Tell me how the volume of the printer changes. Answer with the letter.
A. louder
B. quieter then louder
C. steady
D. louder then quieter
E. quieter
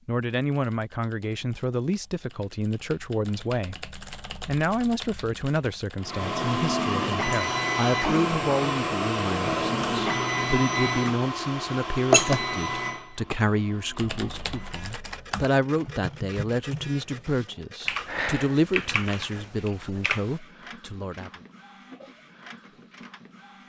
E.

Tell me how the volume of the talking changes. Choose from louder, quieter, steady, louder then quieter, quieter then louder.
steady.